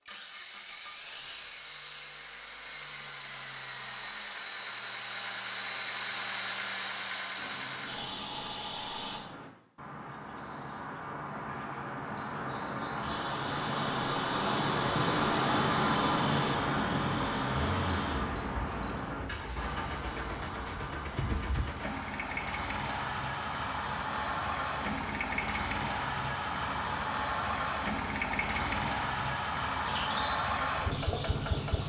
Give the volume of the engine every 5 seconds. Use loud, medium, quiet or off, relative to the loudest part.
medium, loud, medium, medium, loud, loud, loud.